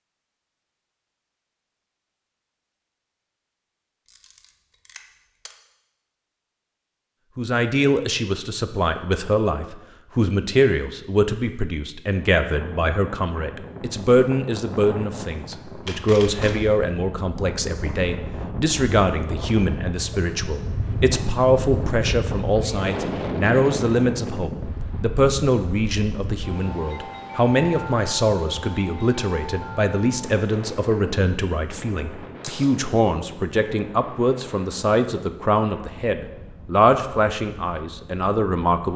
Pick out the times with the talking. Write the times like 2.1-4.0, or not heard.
7.3-38.9.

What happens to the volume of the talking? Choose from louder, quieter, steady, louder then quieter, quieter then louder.
steady.